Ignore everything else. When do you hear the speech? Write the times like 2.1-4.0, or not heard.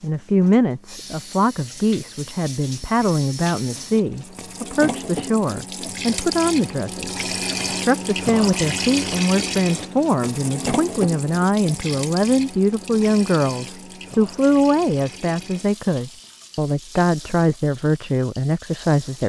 0.0-19.2.